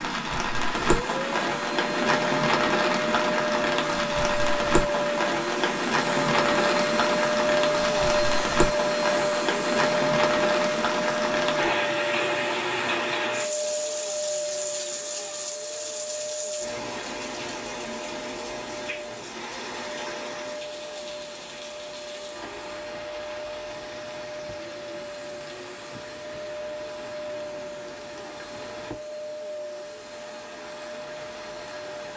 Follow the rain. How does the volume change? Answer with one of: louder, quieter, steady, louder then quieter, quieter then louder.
quieter.